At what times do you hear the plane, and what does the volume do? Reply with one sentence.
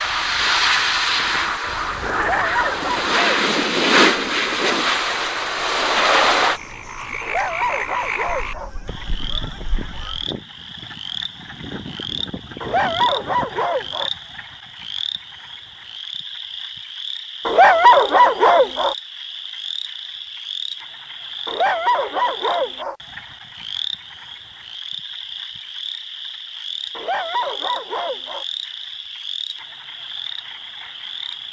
You can hear the plane from 0.0 to 6.6 s, getting quieter then louder.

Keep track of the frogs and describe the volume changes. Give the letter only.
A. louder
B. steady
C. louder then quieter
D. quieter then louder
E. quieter
B.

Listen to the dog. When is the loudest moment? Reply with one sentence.
The loudest moment of the dog is at 18 seconds.